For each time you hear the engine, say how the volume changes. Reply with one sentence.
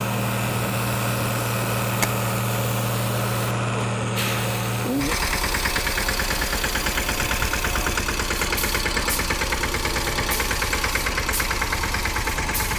You can hear the engine from 0.0 to 12.7 s, at a steady volume.